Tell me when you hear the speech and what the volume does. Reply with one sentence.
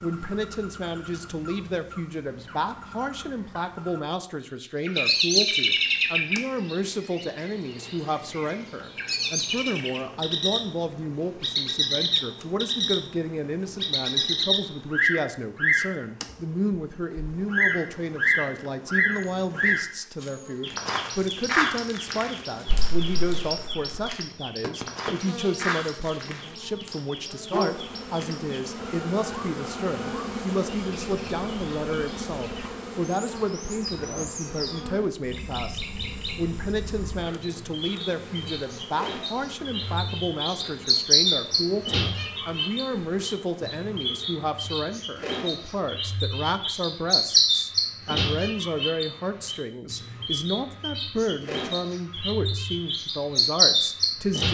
The speech can be heard from 0.0 to 54.4 s, at a steady volume.